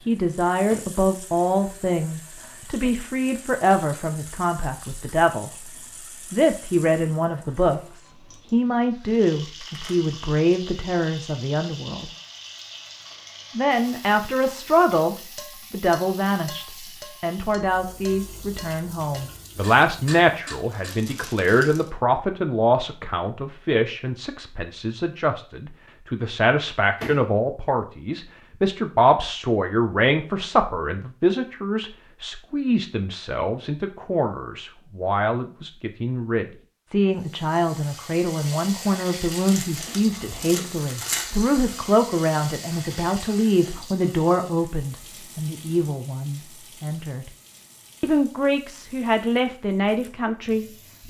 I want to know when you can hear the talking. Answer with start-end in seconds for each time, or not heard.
0.1-5.7, 6.3-12.1, 13.6-47.3, 48.0-51.0.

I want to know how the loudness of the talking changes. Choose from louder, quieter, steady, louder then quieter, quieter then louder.
steady.